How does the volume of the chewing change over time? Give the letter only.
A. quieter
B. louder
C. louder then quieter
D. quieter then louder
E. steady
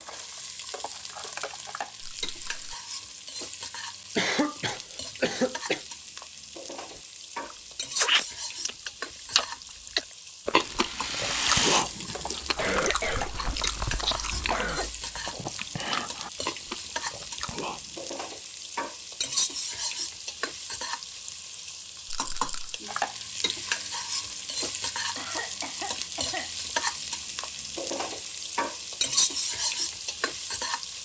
A.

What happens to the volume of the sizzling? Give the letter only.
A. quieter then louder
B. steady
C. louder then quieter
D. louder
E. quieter
D.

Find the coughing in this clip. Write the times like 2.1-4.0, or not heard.
4.2-5.8, 12.6-14.9, 25.1-26.5.